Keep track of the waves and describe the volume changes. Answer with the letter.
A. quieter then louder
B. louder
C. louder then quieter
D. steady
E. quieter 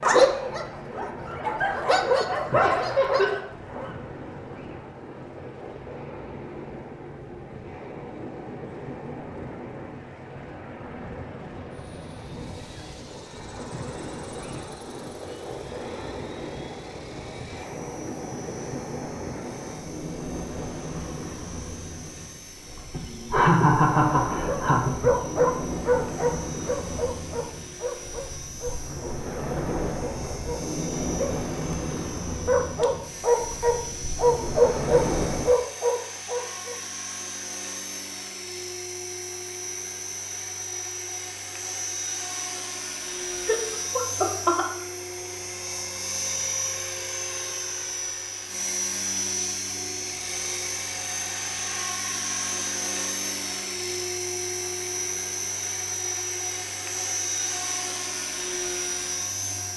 B.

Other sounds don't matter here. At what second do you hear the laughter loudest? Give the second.
24 s.